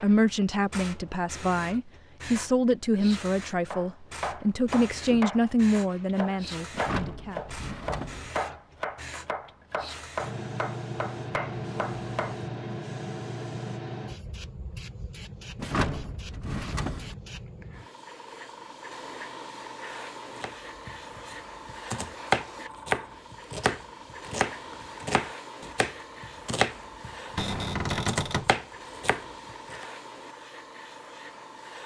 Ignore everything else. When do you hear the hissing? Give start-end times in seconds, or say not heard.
0.0-31.8.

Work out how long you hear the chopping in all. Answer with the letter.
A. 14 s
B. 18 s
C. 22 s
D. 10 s
B.